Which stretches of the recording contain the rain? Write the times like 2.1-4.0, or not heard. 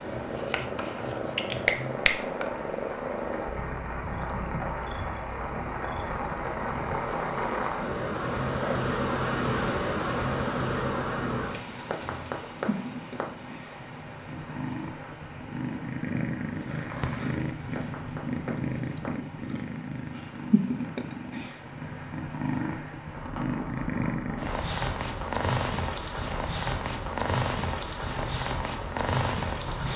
0.0-29.9.